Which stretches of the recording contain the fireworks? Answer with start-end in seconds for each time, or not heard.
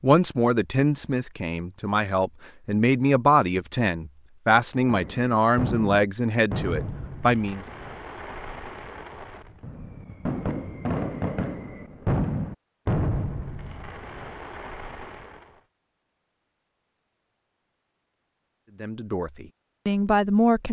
4.8-15.5.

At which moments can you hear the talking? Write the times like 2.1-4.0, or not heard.
0.0-7.7, 18.8-20.6.